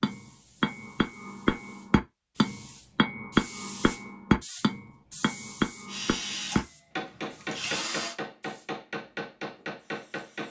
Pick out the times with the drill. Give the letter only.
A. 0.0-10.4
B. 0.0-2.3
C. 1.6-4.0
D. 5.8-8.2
D.